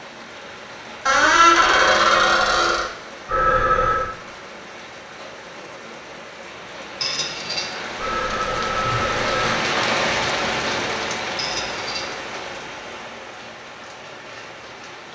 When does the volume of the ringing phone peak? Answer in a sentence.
The volume of the ringing phone peaks at 4 seconds.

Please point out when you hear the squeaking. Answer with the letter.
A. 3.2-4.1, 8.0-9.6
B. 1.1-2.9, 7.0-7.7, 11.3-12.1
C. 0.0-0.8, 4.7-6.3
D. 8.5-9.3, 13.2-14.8
B.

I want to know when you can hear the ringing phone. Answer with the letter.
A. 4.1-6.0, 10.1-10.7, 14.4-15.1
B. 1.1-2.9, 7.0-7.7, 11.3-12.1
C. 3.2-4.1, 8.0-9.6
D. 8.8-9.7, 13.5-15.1
C.